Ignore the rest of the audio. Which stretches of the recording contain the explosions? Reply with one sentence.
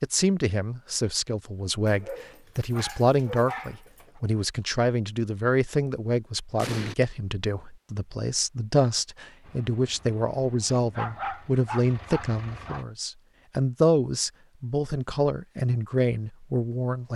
You can hear the explosions from 6.5 to 7.0 s.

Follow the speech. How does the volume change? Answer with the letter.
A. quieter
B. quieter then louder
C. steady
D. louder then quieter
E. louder
C.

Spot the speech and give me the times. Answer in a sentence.
You can hear the speech from 0.0 to 17.1 s.